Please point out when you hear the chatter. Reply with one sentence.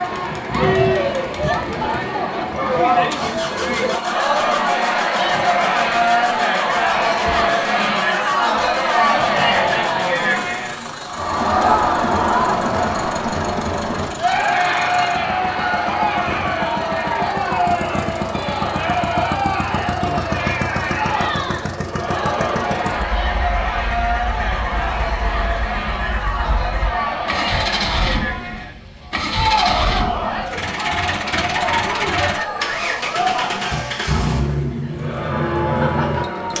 You can hear the chatter from 0.0 to 36.5 s.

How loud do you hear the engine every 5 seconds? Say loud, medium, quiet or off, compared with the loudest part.
medium, medium, medium, loud, loud, loud, loud, loud.